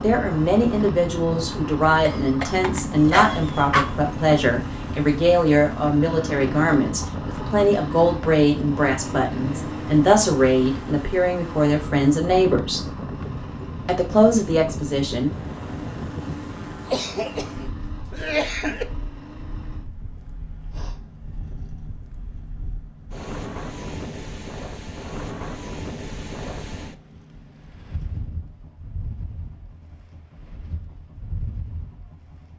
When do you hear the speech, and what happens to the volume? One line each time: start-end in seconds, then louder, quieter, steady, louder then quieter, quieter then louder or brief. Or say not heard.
0.0-12.8 steady
13.8-15.3 brief.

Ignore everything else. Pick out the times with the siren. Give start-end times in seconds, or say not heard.
not heard.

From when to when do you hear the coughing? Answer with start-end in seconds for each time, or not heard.
2.0-3.9, 16.9-18.9.